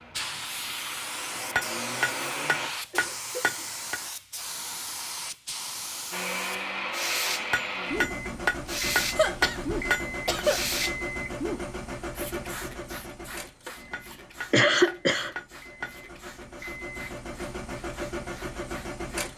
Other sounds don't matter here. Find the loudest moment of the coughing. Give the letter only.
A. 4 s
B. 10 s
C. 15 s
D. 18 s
C.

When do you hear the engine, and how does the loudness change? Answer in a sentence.
The engine can be heard briefly from 0.0 to 2.7 s; and from 6.1 to 19.3 s, getting quieter then louder.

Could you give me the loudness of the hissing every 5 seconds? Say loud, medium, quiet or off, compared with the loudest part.
loud, loud, loud, quiet.